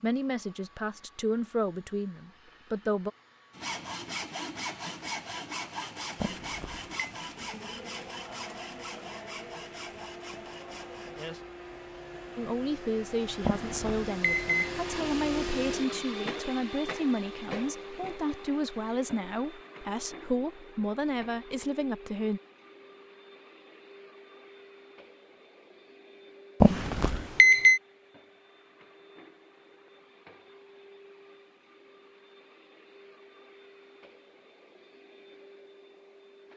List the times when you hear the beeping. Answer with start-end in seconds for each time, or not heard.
6.2-6.9, 13.4-14.8, 26.6-27.8.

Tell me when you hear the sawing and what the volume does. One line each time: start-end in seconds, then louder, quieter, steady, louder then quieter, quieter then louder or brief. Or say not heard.
3.5-11.4 quieter.